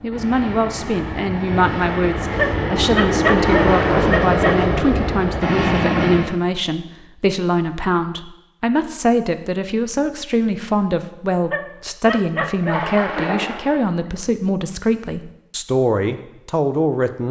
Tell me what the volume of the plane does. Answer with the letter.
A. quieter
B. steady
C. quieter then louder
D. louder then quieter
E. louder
E.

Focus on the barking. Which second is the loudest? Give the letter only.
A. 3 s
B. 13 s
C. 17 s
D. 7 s
A.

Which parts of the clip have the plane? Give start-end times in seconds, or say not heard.
0.0-6.3.